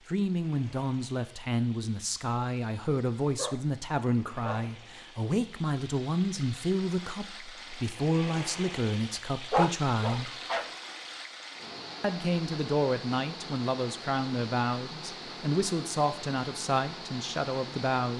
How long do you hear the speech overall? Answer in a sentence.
The speech can be heard for 16 seconds in total.